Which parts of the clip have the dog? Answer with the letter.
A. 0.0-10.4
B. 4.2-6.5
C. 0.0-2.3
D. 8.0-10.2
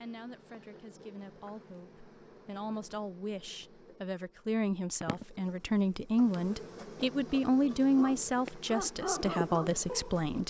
D.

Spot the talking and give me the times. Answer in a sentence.
The talking can be heard from 0.0 to 10.4 s.